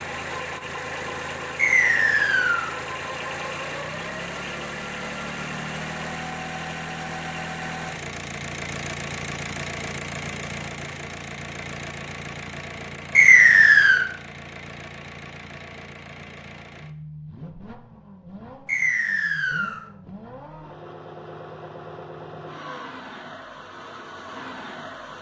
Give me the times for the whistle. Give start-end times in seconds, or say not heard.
1.6-2.7, 13.2-14.1, 18.6-19.8.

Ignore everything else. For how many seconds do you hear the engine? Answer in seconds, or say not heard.
25 s.